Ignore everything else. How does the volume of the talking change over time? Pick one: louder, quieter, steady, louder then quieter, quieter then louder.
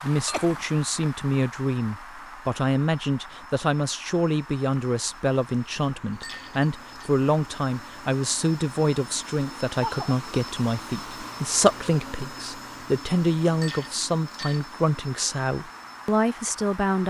steady.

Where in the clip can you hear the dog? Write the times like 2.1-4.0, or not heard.
not heard.